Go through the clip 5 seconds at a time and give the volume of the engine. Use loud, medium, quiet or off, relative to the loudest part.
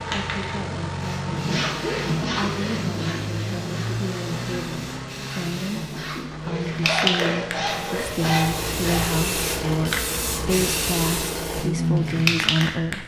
loud, medium, loud.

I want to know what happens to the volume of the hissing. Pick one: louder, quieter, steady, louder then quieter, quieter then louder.
louder.